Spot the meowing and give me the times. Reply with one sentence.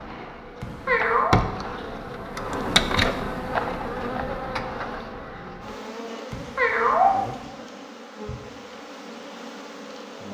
You can hear the meowing from 0.6 to 1.4 s and from 6.3 to 7.2 s.